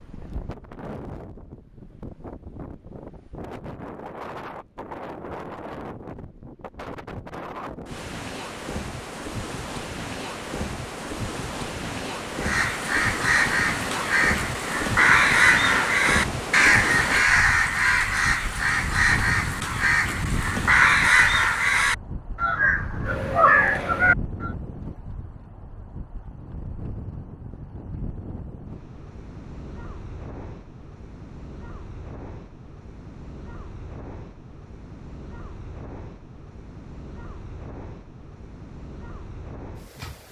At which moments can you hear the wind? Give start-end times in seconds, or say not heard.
0.0-40.2.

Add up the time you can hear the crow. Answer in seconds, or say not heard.
12 s.